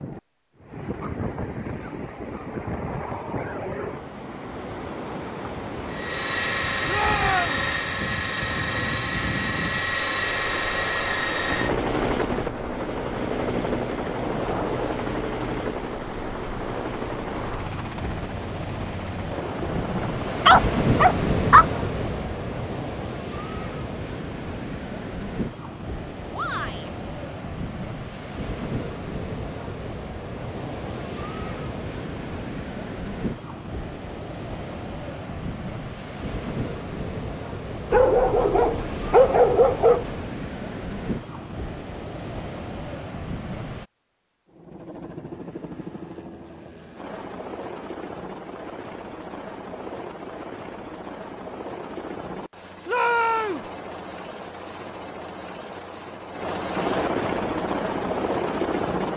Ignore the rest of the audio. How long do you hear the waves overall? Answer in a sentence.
You can hear the waves for 44 seconds altogether.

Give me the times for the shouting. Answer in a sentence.
The shouting can be heard from 6.8 to 7.7 s, from 26.3 to 26.9 s and from 52.9 to 53.6 s.